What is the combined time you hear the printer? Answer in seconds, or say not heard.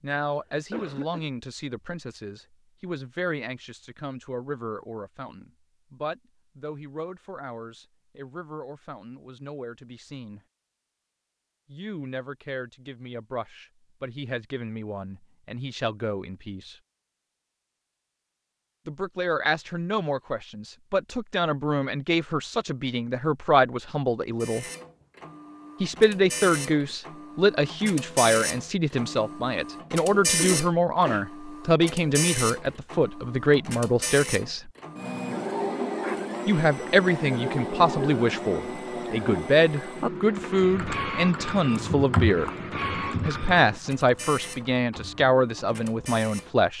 22 s.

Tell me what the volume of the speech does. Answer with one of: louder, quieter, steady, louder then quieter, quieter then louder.
louder.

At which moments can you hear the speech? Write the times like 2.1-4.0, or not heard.
0.0-10.4, 11.7-16.8, 18.9-24.6, 25.8-34.7, 36.5-42.5, 43.2-46.7.